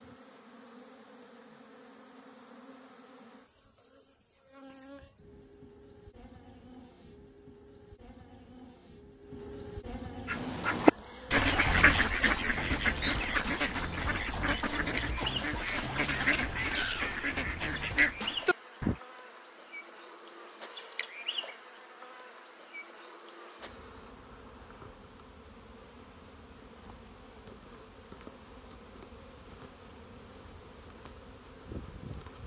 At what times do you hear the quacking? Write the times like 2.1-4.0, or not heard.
10.2-19.0.